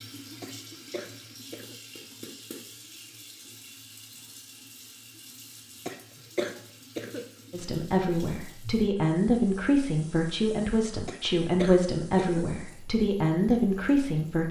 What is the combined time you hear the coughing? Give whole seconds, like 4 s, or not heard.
4 s.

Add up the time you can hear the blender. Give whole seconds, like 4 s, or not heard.
not heard.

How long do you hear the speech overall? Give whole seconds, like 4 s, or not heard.
7 s.